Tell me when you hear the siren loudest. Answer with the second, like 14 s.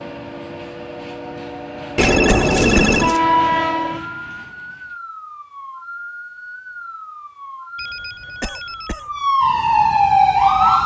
10 s.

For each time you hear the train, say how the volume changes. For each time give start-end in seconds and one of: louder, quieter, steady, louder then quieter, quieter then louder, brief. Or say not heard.
0.0-5.0 louder then quieter.